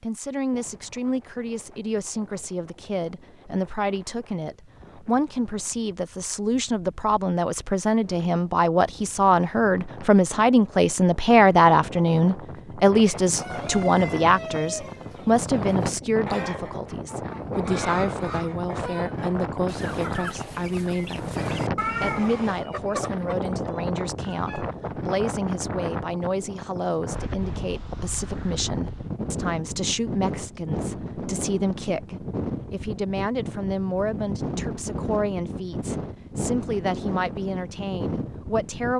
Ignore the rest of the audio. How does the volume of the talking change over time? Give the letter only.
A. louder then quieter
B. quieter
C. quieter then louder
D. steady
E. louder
A.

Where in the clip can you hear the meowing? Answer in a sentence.
The meowing can be heard from 21.8 to 22.6 s.